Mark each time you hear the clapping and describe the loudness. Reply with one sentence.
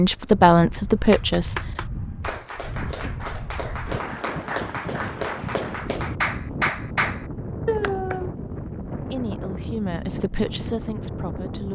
You can hear the clapping from 1.1 to 8.3 s, getting louder.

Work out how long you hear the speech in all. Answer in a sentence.
You can hear the speech for 4 seconds altogether.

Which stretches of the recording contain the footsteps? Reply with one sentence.
The footsteps can't be heard in this clip.